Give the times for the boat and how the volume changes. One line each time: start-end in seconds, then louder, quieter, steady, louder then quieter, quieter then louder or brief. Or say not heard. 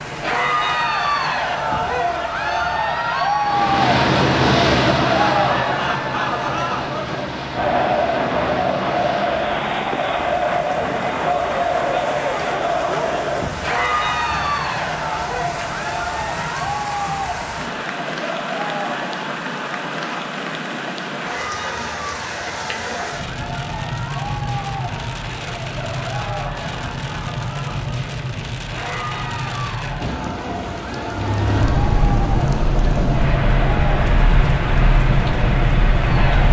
3.4-9.6 quieter
31.0-36.4 steady.